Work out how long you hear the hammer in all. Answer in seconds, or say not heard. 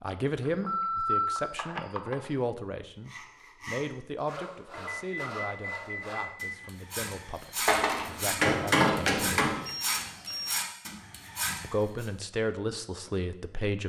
2 s.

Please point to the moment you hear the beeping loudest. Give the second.
1 s.